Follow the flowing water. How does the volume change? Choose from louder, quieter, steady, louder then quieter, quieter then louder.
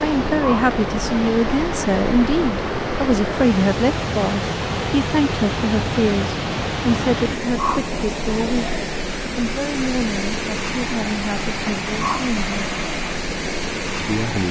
steady.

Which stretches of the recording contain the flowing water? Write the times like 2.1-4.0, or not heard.
0.0-14.4.